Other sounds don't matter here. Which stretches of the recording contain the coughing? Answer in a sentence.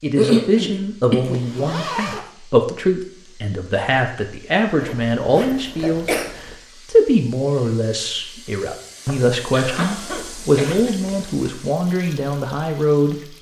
You can hear the coughing from 0.1 to 1.4 s, from 5.5 to 6.3 s and from 9.1 to 10.9 s.